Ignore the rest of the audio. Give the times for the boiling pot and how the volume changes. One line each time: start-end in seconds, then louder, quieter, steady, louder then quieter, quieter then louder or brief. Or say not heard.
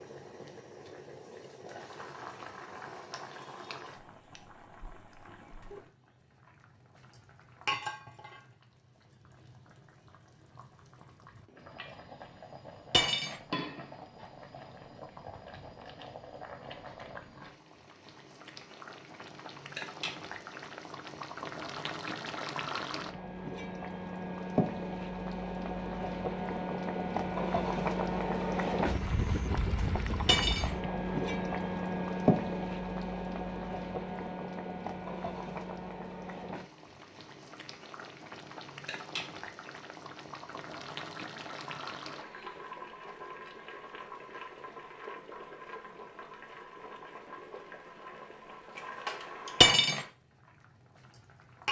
0.0-51.6 louder then quieter.